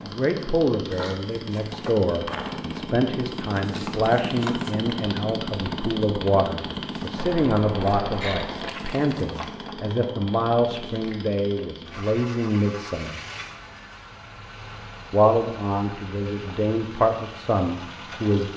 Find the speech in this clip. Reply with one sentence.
The speech can be heard from 0.0 to 13.2 s and from 15.1 to 18.5 s.